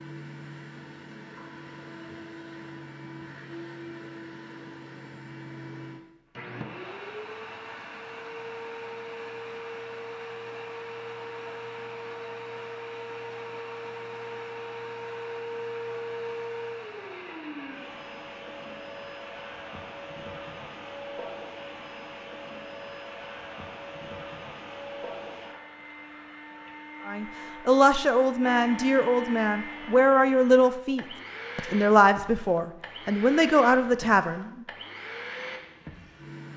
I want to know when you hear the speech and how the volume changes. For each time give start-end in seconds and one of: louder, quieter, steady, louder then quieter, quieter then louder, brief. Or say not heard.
27.1-34.5 steady.